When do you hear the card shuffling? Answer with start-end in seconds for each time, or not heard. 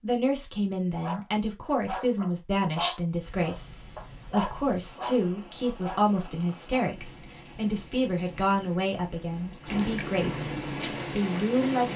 not heard.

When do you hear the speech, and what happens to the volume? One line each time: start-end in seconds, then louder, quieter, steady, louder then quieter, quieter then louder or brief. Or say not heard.
0.0-11.9 steady.